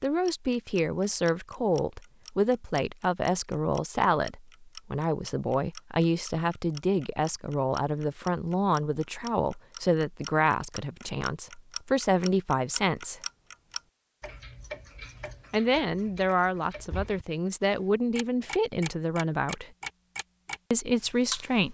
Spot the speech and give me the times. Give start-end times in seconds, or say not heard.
0.0-13.2, 15.5-19.7, 20.7-21.7.